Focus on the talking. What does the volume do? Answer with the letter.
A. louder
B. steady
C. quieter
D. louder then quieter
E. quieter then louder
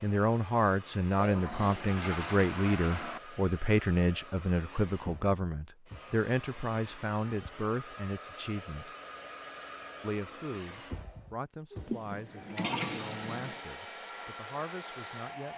C.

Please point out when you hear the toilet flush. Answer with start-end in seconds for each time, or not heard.
1.1-3.2, 11.8-13.6.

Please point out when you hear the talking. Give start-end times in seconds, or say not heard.
0.0-8.9, 10.0-15.5.